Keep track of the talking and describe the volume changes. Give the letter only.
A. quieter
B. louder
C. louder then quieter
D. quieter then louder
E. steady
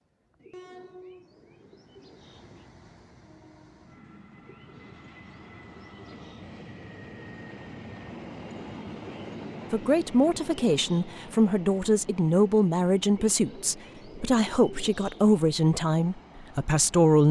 E.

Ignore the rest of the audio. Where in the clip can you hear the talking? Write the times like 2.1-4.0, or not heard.
9.7-17.2.